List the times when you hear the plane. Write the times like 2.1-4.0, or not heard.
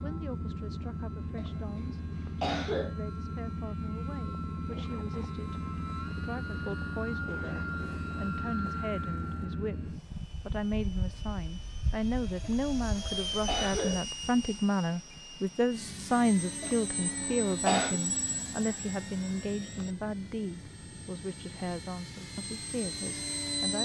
0.0-23.8.